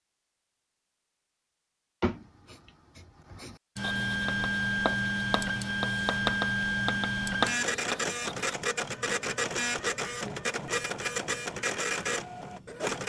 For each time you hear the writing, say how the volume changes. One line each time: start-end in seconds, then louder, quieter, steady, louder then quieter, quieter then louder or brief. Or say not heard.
2.0-8.6 louder.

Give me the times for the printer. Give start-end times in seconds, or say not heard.
3.8-13.0.